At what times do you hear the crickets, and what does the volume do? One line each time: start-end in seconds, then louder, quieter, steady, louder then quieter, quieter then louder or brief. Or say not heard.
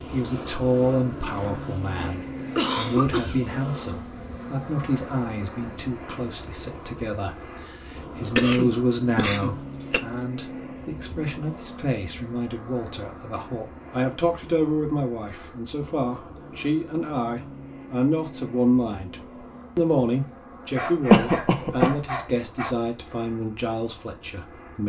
not heard.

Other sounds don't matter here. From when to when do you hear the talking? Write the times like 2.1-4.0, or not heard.
0.0-24.8.